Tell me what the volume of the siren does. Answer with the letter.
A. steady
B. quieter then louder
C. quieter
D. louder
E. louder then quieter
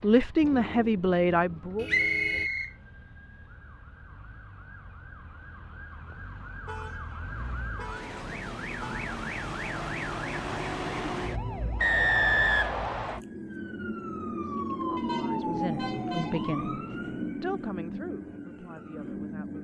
D.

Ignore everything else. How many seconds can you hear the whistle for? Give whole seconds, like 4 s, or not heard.
2 s.